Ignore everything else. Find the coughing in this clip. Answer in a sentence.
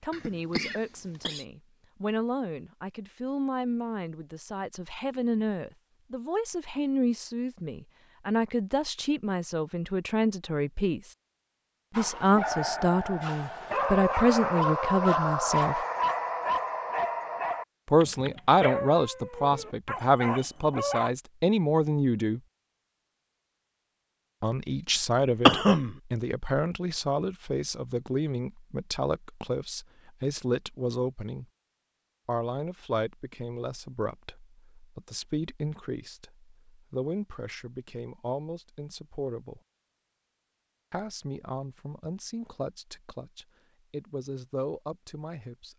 You can hear the coughing from 0.1 to 1.4 s and from 25.4 to 25.9 s.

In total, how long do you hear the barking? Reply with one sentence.
You can hear the barking for 9 seconds altogether.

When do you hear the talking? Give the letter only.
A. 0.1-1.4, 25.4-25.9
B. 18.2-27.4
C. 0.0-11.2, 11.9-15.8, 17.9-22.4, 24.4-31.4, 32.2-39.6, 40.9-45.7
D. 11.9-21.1
C.